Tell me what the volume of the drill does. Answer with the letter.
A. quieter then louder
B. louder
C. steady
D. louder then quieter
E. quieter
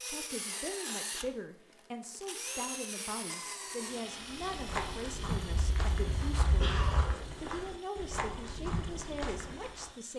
E.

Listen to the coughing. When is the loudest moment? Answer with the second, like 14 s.
7 s.